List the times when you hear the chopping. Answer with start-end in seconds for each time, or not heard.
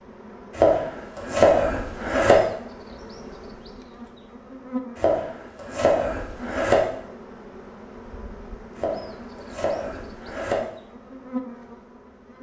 0.6-2.4, 5.0-6.8, 8.8-10.6.